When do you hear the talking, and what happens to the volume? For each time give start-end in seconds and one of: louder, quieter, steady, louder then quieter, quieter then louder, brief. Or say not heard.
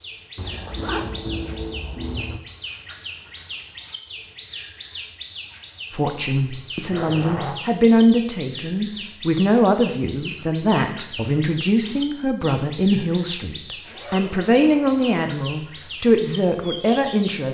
5.9-17.4 steady.